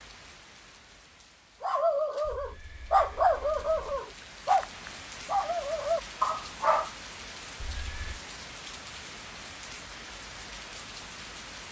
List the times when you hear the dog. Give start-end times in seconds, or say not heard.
1.6-6.9.